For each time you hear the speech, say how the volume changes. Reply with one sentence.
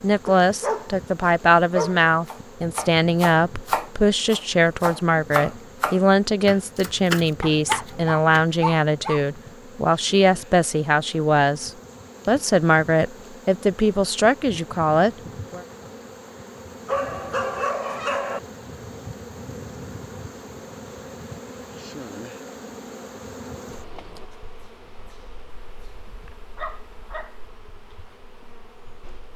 You can hear the speech from 0.0 to 15.6 s, at a steady volume.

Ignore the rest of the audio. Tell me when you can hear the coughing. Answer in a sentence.
You can't hear the coughing here.